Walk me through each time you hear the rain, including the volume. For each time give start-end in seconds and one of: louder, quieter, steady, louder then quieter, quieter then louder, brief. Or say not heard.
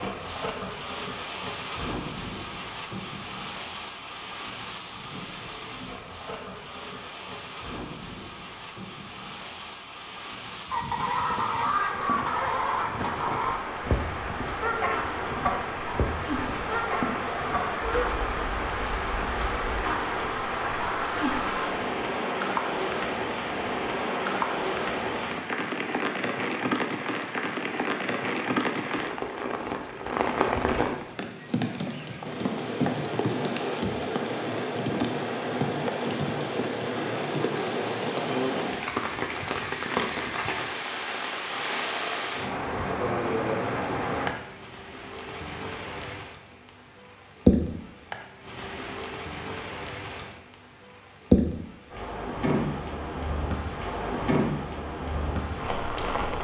0.0-56.3 louder.